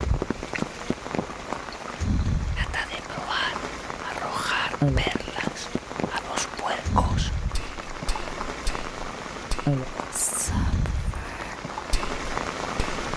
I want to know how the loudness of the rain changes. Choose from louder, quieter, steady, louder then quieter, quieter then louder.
steady.